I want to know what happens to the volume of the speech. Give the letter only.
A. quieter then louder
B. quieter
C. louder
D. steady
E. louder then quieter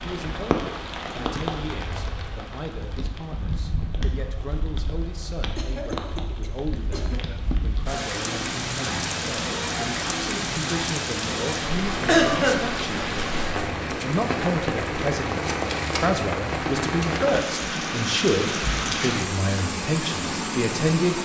C.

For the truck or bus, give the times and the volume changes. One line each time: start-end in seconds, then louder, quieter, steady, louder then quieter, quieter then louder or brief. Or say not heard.
not heard.